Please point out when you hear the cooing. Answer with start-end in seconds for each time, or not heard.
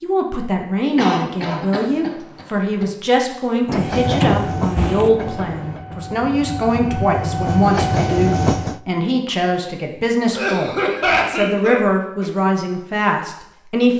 not heard.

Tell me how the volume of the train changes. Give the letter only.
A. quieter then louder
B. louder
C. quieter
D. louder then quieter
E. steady
A.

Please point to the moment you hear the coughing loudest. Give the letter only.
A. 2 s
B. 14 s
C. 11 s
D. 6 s
C.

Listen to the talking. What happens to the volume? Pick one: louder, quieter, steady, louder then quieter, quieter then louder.
steady.